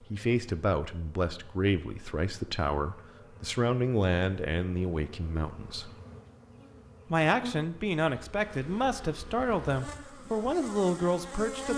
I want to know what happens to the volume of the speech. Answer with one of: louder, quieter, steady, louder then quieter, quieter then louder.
steady.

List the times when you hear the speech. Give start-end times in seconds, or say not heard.
0.0-5.9, 7.1-11.7.